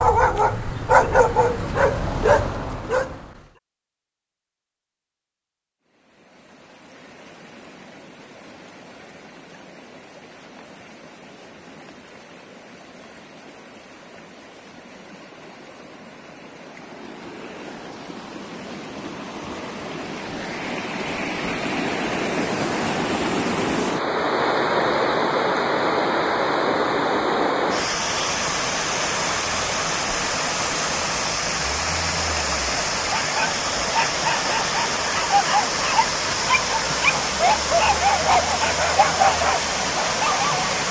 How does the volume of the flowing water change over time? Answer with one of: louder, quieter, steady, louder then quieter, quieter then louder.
louder.